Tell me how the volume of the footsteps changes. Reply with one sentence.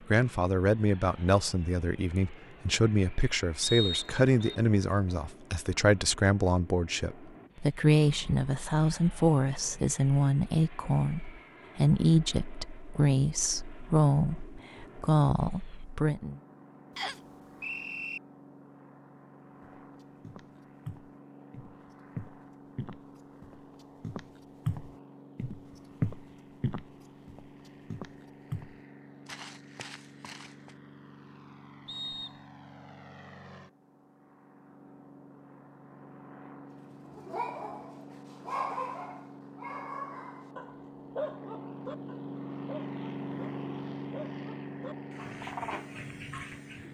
The loudness of the footsteps goes up, then down.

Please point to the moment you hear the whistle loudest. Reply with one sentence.
The volume of the whistle peaks at 4 seconds.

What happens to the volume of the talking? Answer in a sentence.
The volume of the talking stays about the same.